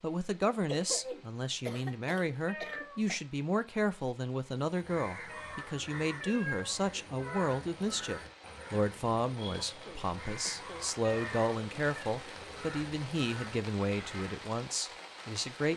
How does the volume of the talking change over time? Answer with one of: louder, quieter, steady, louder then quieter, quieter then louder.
steady.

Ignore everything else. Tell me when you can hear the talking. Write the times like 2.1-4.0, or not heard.
0.0-15.7.